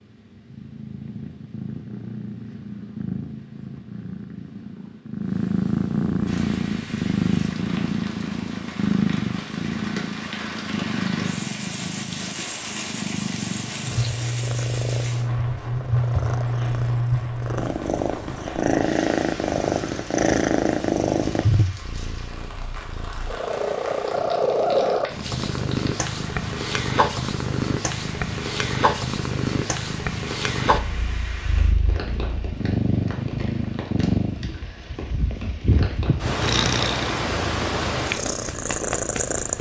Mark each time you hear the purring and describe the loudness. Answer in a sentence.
You can hear the purring from 0.0 to 39.5 s, at a steady volume.